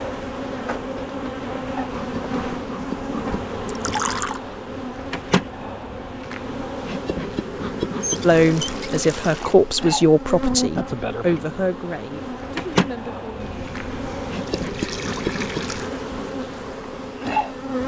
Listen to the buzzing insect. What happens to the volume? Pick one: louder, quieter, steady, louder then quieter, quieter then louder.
steady.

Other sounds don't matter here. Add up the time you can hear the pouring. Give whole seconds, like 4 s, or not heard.
5 s.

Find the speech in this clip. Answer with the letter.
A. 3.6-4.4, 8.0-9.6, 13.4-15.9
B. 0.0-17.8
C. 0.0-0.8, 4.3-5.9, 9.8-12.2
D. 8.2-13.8
D.